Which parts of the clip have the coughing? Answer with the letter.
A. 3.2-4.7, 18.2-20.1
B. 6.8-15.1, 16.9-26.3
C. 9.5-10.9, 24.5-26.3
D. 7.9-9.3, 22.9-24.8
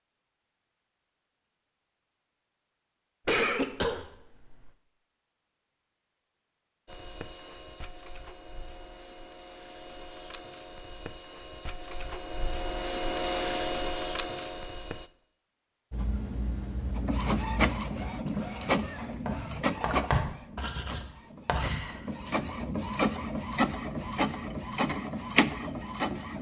A.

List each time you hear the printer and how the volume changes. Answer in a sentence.
The printer can be heard from 6.8 to 15.1 s, getting louder; and from 16.9 to 26.3 s, getting quieter then louder.